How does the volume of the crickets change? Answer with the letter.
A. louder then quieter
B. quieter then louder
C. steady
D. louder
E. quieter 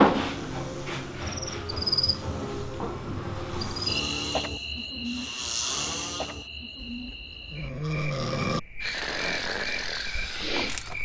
E.